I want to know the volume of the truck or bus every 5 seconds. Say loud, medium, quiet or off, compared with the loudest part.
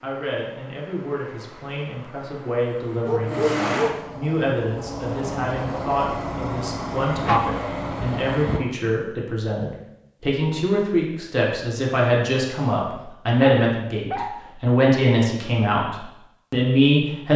loud, loud, off, off.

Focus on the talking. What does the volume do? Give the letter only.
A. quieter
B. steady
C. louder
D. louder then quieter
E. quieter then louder
C.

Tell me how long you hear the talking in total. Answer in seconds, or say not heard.
17 s.